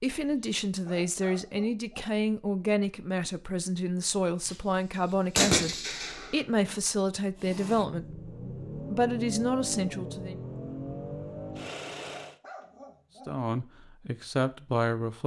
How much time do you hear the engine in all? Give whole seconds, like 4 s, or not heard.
5 s.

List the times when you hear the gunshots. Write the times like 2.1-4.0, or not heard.
5.3-6.4.